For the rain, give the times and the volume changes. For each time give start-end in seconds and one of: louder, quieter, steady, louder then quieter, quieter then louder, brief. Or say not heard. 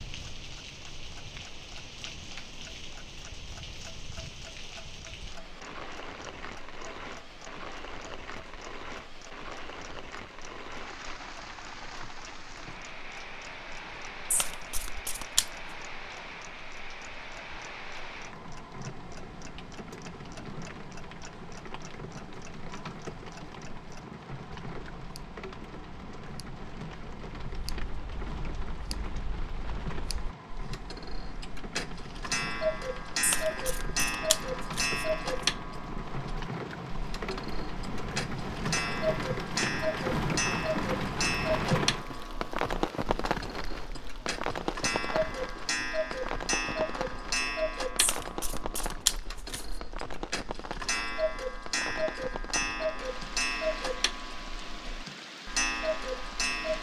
0.0-56.7 louder then quieter.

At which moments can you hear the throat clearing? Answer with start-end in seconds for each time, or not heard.
not heard.